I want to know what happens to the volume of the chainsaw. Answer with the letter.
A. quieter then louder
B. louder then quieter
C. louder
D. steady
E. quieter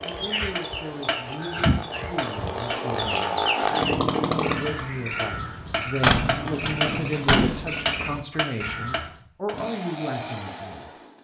B.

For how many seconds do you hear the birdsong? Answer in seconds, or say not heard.
9 s.